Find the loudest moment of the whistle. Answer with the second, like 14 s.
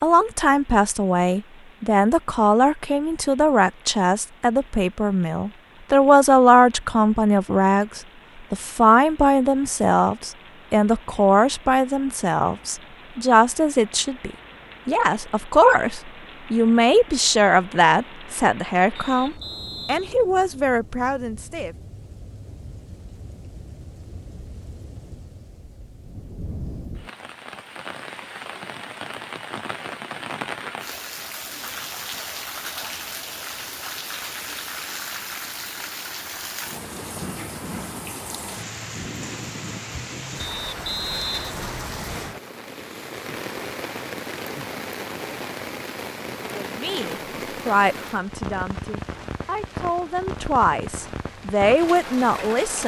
41 s.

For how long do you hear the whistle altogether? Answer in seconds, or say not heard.
3 s.